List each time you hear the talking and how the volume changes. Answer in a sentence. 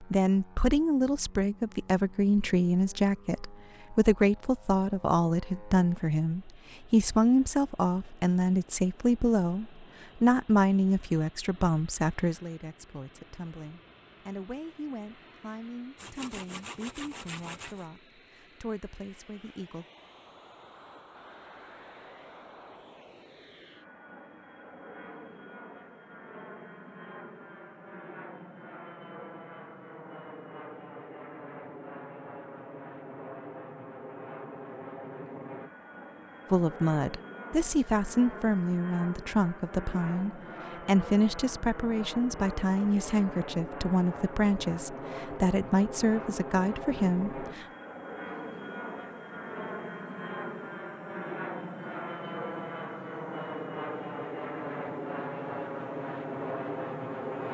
The talking can be heard from 0.0 to 19.9 s, getting quieter; and from 36.5 to 47.6 s, at a steady volume.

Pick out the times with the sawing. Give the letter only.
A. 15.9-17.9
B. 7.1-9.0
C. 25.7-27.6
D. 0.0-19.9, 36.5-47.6
A.